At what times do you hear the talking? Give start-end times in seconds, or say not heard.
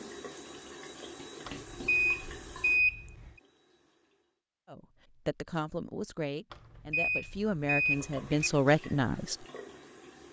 4.7-9.3.